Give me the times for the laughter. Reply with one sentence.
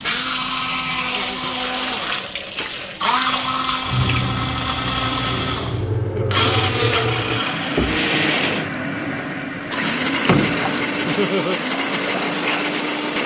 You can hear the laughter from 1.0 to 1.6 s, from 6.0 to 6.5 s and from 11.1 to 11.6 s.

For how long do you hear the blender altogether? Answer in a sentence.
You can hear the blender for 13 seconds altogether.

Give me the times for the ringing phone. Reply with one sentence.
You can't hear the ringing phone here.